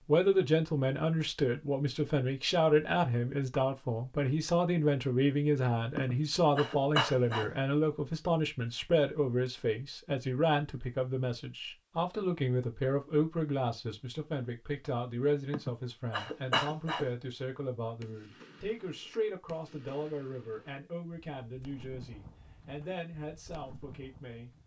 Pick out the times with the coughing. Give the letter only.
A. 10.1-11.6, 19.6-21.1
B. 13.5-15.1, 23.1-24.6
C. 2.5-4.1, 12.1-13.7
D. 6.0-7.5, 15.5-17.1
D.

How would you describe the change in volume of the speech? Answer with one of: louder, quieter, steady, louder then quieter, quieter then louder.
quieter.